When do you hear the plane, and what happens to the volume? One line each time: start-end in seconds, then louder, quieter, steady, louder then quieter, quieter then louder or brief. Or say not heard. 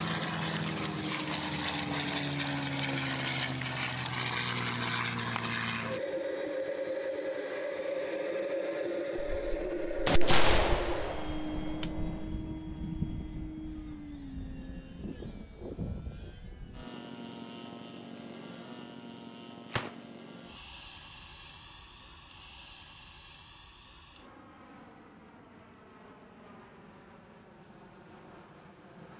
0.0-29.1 quieter.